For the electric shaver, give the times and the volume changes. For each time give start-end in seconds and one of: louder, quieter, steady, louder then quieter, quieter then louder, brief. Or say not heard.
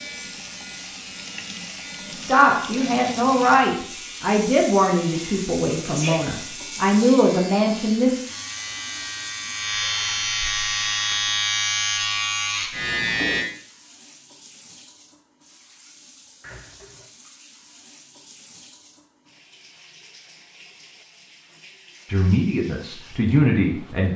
0.0-13.4 louder.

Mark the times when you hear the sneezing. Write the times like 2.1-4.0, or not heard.
5.0-6.3.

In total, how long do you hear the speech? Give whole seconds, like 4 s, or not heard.
8 s.